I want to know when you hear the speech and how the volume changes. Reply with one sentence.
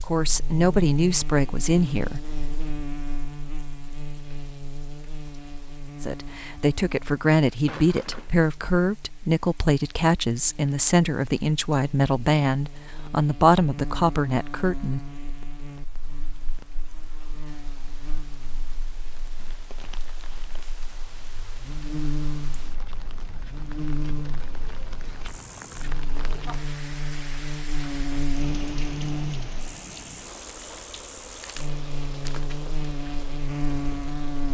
You can hear the speech briefly from 0.0 to 2.2 s; and from 6.0 to 15.2 s, at a steady volume.